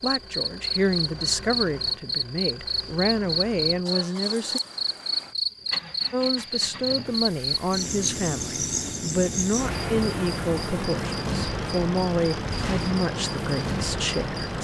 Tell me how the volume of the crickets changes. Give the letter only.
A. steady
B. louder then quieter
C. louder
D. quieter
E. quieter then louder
A.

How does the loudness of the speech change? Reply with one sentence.
The volume of the speech stays about the same.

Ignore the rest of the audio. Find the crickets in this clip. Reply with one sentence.
You can hear the crickets from 0.0 to 14.5 s.